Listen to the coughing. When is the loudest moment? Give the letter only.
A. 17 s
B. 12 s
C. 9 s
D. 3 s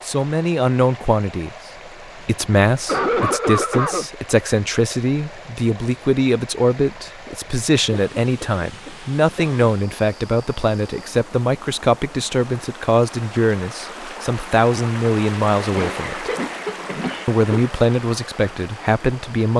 D.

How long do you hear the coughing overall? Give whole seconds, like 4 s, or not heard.
5 s.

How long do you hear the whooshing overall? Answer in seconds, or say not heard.
2 s.